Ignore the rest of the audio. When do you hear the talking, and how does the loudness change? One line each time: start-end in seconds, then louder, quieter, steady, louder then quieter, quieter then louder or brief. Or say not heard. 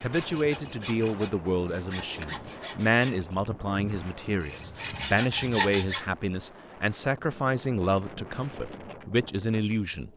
0.0-10.1 steady.